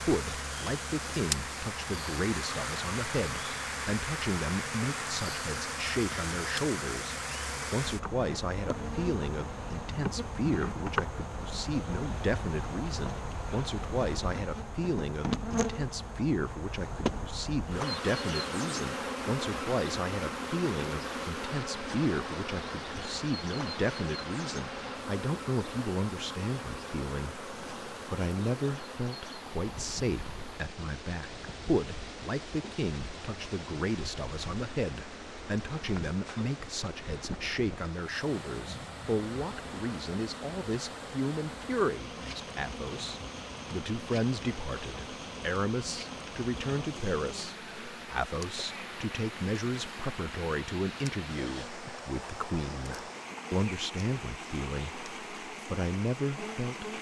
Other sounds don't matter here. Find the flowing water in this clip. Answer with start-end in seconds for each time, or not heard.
17.6-56.9.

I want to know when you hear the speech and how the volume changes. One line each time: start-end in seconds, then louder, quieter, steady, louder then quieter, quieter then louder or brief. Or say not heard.
0.0-56.9 steady.